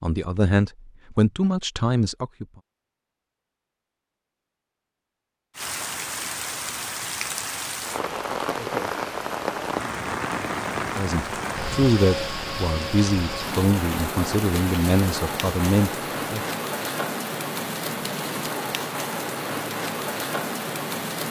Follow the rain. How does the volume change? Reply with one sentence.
The volume of the rain stays about the same.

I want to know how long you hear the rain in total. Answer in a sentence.
You can hear the rain for 16 seconds altogether.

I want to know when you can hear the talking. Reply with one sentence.
You can hear the talking from 0.0 to 2.5 s and from 10.9 to 16.4 s.